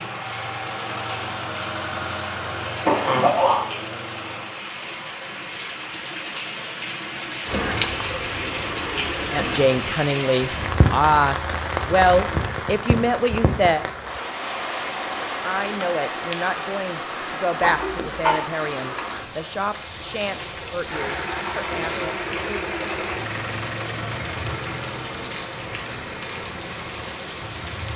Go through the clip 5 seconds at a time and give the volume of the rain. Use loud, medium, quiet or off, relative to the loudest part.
medium, loud, loud, loud, medium, medium.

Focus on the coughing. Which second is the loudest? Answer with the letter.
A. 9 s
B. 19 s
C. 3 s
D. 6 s
C.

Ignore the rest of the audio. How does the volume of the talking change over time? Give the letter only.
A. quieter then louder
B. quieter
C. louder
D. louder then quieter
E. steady
B.